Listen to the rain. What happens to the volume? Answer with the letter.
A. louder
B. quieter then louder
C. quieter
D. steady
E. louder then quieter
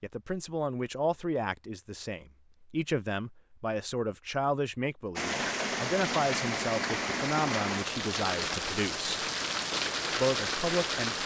D.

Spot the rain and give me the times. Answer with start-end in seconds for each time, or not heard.
5.2-11.2.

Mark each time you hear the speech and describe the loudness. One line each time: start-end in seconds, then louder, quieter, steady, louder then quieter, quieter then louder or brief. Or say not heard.
0.0-9.2 steady
10.2-11.2 brief.